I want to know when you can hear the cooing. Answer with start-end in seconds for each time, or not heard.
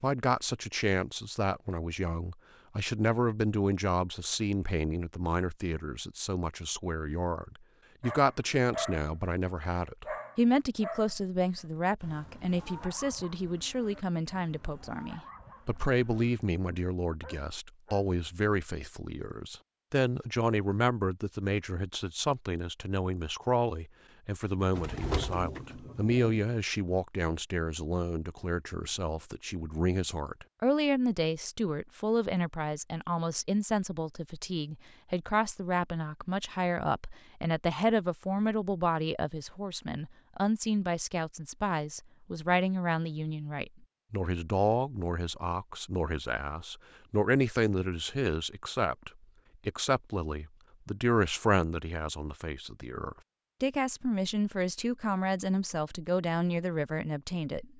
24.8-26.4.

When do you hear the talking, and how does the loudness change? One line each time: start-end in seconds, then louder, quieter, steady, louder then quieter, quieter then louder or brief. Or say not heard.
0.0-57.7 steady.